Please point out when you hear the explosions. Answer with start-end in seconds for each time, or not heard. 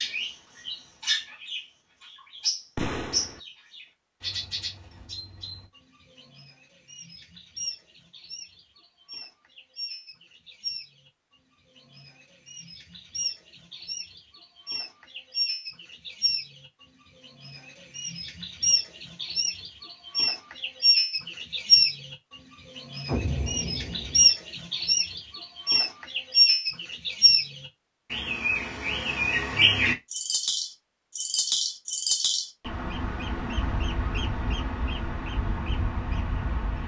2.8-3.4, 23.1-24.3.